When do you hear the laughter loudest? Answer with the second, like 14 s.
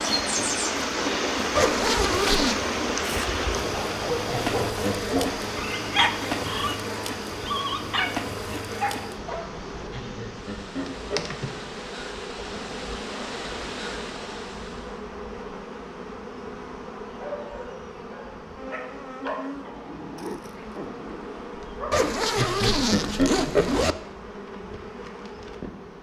23 s.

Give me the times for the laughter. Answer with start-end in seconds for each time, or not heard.
4.2-5.4, 9.9-11.3, 22.4-23.8.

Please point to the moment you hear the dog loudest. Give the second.
6 s.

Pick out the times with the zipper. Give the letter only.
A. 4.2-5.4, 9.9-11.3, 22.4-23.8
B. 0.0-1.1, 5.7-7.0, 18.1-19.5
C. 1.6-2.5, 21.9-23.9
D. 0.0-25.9
C.